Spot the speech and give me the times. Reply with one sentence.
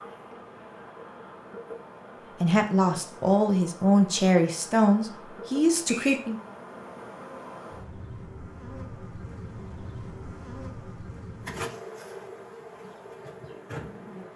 The speech can be heard from 2.4 to 6.3 s.